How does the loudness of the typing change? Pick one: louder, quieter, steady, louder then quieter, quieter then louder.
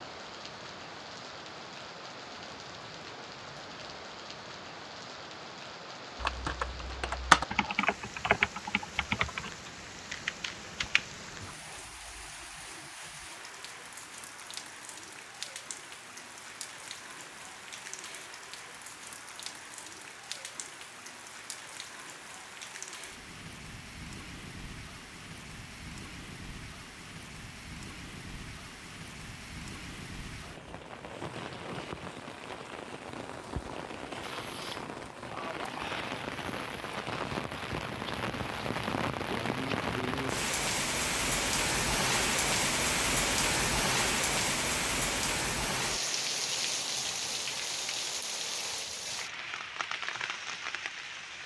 quieter.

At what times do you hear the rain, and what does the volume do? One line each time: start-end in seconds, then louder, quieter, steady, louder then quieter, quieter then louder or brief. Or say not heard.
0.0-51.4 louder.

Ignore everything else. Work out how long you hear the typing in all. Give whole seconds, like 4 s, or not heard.
5 s.